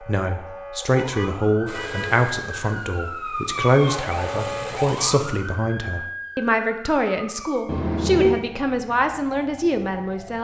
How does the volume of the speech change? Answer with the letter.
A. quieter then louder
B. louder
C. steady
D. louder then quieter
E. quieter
C.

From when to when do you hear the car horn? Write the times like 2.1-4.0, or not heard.
0.9-2.1, 7.7-8.4.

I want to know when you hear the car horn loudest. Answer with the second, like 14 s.
8 s.